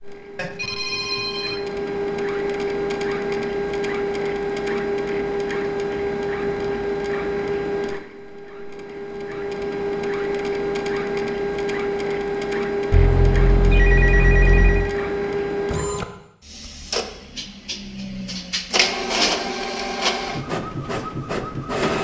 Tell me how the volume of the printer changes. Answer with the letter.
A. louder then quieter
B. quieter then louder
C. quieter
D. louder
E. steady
E.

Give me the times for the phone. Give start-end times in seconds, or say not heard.
0.3-1.6, 12.9-14.9.